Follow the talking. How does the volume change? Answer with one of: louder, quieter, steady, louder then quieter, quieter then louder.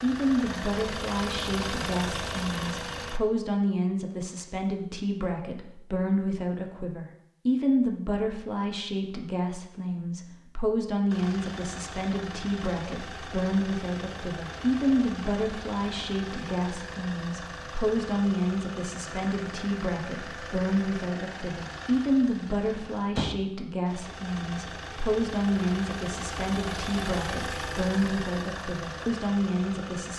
steady.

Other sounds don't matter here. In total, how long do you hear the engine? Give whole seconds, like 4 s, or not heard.
22 s.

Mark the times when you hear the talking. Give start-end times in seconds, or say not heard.
0.0-30.1.